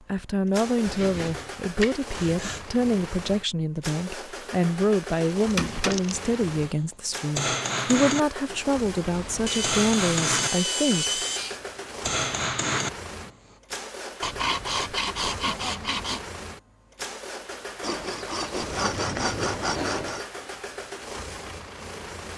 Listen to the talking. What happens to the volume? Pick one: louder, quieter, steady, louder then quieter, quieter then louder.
steady.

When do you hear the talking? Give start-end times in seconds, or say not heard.
0.1-11.2.